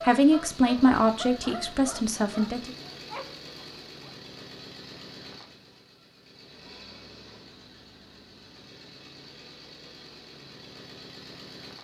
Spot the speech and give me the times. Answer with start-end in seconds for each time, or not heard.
0.0-2.8.